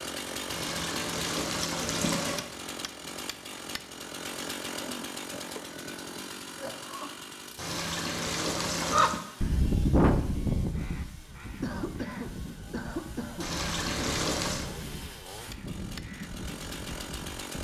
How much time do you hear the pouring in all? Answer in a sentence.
You can hear the pouring for 5 seconds altogether.